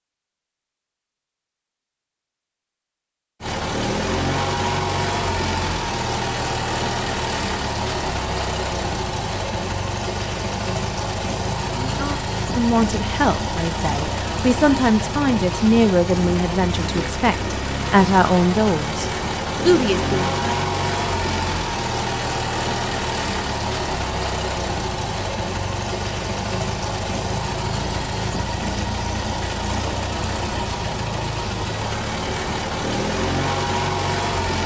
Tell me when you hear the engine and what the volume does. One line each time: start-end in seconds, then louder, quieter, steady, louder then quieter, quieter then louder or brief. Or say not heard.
3.4-34.6 steady.